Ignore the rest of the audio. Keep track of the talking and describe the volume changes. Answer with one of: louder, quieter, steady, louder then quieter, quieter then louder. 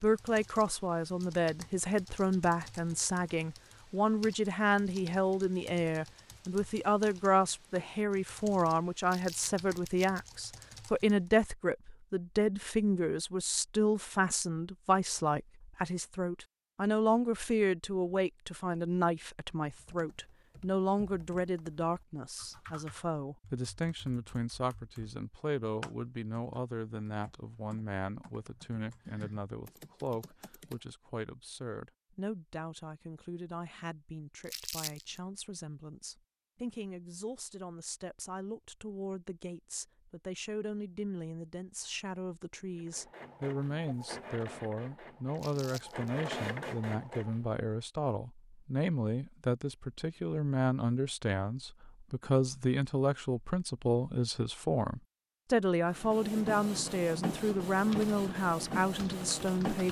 quieter then louder.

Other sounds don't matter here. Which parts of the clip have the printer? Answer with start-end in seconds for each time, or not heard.
42.8-47.6, 55.9-59.8.